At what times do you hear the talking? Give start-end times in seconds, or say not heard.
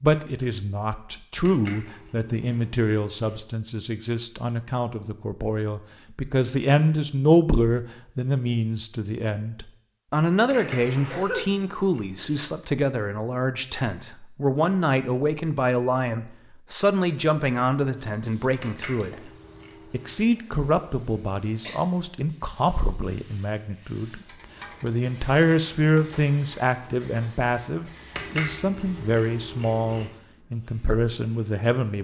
0.0-19.3, 19.9-31.9.